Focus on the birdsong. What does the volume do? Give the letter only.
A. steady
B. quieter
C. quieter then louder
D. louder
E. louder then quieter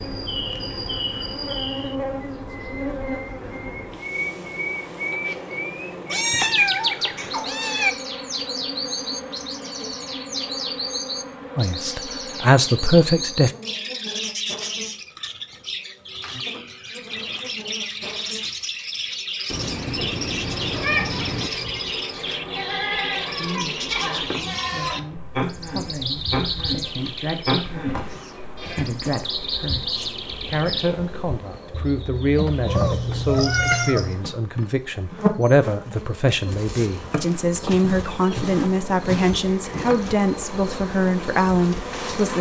A.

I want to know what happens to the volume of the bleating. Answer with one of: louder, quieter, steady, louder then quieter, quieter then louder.
louder.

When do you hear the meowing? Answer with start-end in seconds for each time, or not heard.
6.1-8.0, 19.5-21.5, 32.6-34.1.